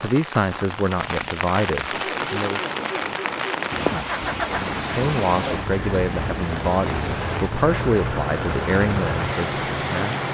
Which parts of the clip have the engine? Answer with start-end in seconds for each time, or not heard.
1.9-10.2.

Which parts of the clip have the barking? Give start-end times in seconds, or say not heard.
not heard.